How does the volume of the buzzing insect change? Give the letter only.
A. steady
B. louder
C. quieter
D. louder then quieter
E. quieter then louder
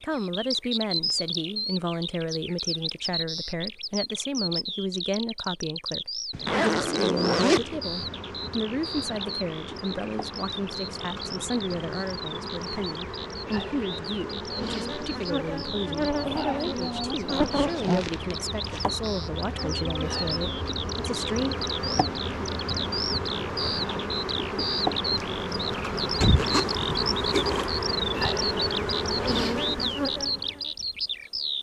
B.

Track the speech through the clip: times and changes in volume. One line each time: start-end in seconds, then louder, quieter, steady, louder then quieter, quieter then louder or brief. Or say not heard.
0.0-21.6 steady.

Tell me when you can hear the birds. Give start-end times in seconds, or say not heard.
0.0-31.5.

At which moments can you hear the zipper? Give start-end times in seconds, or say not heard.
6.3-7.8, 17.3-18.9, 26.2-27.7.